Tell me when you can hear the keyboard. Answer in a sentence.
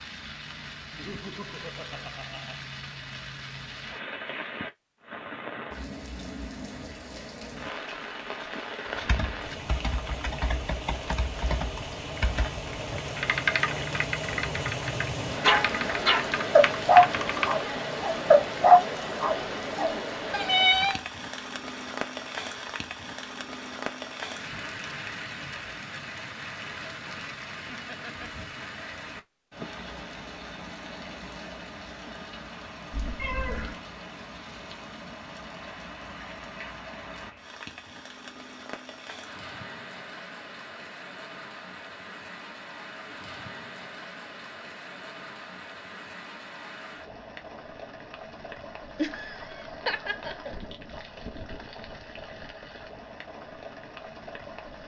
The keyboard can be heard from 8.8 to 17.6 s.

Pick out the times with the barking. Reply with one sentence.
You can hear the barking from 15.4 to 21.0 s.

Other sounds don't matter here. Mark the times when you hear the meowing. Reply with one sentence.
The meowing can be heard from 32.9 to 33.8 s.